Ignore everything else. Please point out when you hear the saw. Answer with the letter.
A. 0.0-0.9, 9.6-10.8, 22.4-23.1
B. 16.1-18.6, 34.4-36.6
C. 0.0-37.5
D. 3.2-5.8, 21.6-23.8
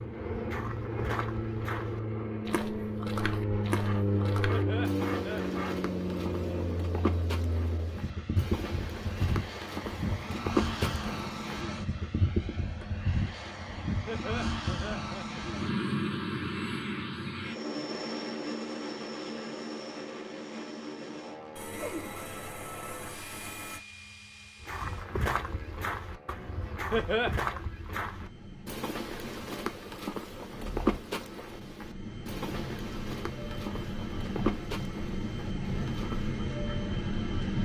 D.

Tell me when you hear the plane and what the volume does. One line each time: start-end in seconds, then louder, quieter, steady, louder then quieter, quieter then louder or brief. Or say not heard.
0.0-37.5 quieter then louder.